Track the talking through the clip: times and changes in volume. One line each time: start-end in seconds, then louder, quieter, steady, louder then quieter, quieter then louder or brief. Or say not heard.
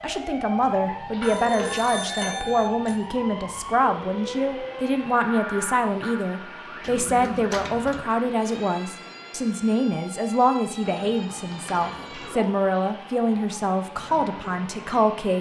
0.0-15.3 steady.